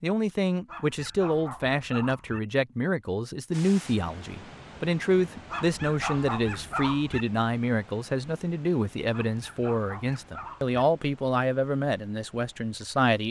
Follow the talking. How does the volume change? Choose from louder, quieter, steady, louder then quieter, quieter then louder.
steady.